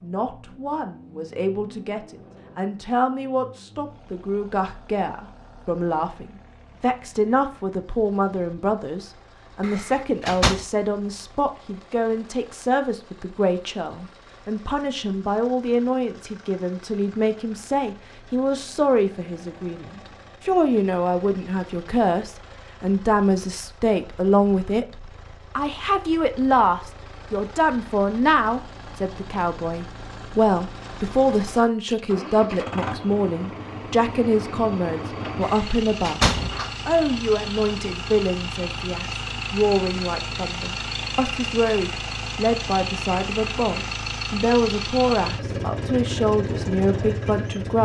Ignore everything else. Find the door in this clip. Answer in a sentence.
The door can be heard from 9.6 to 10.7 s and from 35.4 to 36.8 s.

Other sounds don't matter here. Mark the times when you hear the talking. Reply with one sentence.
The talking can be heard from 0.0 to 47.7 s.